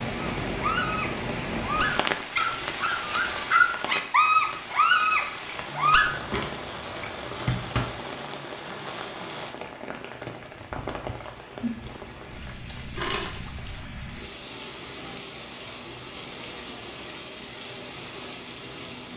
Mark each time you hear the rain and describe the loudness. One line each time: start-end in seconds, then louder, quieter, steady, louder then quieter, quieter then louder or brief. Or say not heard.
0.0-19.1 quieter.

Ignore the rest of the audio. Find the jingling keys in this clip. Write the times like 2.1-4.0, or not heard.
6.0-7.9, 12.2-13.4.